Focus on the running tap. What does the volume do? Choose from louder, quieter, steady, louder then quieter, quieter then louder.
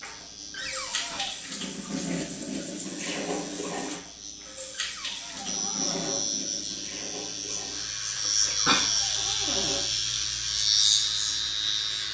quieter.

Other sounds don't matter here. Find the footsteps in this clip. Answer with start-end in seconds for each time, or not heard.
not heard.